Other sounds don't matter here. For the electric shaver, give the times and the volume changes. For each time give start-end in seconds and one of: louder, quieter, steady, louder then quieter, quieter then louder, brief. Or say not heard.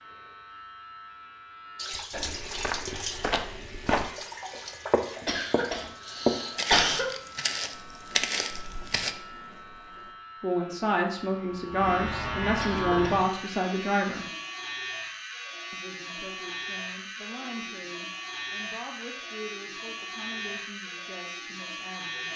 0.0-22.3 louder.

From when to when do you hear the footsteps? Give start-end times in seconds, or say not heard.
1.9-4.1, 4.9-9.2.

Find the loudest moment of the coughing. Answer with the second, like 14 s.
7 s.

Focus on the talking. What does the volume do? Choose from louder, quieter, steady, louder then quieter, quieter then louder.
quieter.